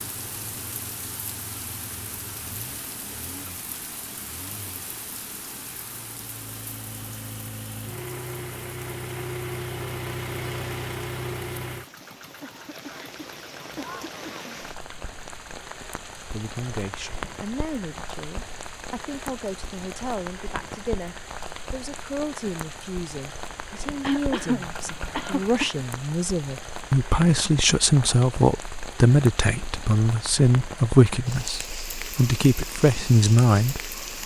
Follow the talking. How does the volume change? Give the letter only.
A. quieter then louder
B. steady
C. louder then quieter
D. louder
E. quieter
D.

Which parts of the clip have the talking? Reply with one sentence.
You can hear the talking from 16.1 to 34.0 s.